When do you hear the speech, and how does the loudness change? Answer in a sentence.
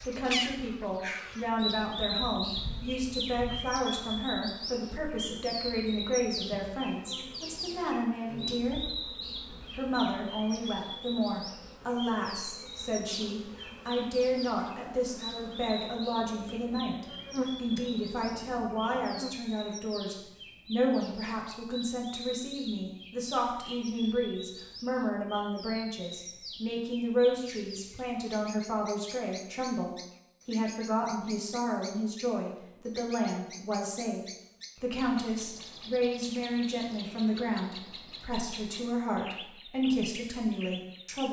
You can hear the speech from 0.1 to 41.2 s, at a steady volume.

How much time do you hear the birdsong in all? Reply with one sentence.
The birdsong can be heard for 41 seconds in total.